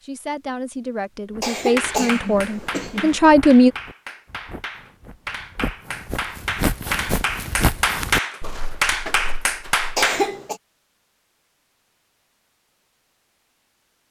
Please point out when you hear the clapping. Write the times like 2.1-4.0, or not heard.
1.8-10.3.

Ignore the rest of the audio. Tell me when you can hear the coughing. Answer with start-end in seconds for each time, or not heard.
1.4-3.2, 9.9-10.6.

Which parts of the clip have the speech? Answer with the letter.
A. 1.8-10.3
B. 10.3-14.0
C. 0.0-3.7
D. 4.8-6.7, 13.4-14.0
C.